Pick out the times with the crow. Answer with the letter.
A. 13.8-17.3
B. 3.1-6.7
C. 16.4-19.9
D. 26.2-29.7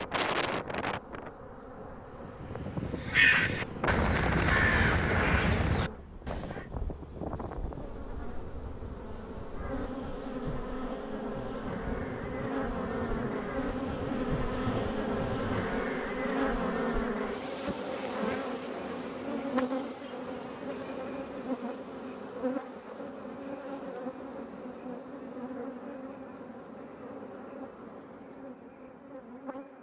B.